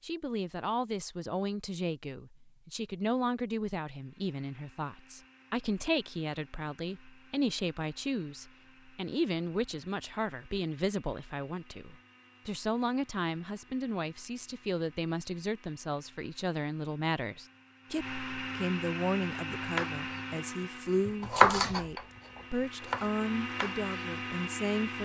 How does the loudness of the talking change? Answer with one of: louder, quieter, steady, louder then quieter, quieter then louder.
steady.